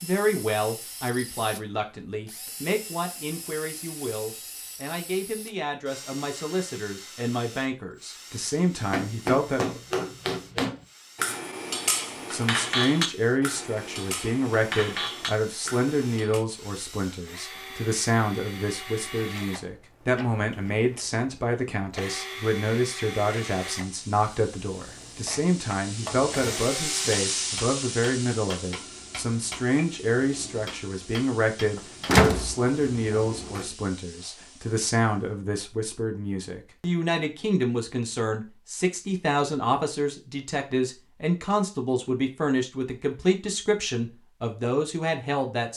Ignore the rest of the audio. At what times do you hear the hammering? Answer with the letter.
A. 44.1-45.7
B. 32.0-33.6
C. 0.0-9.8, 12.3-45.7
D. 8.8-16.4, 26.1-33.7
D.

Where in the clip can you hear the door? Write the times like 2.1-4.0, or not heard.
32.0-33.6.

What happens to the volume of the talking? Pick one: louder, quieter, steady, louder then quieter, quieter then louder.
steady.